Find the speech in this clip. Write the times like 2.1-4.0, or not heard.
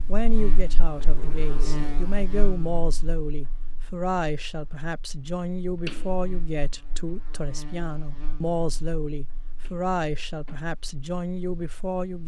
0.1-12.2.